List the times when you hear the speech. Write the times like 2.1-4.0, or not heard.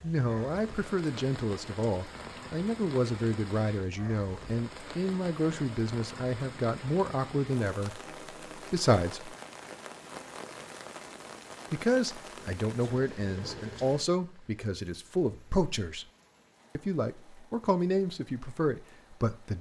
0.0-9.3, 11.7-16.1, 16.8-19.5.